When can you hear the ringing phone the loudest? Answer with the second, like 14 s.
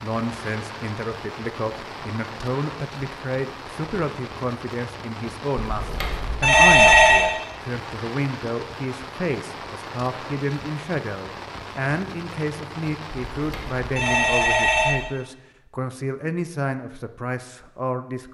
7 s.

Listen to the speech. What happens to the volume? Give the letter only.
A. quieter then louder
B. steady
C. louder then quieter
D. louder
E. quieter
B.